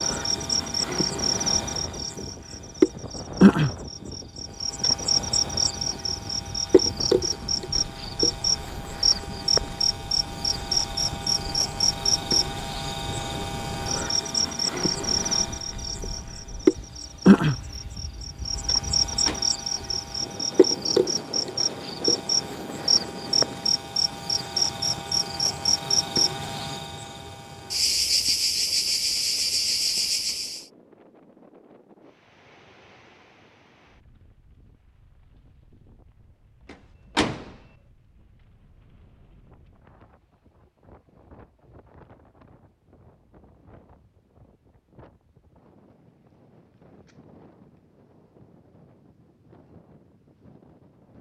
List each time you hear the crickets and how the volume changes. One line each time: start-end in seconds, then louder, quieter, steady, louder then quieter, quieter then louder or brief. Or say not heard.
0.0-30.6 steady.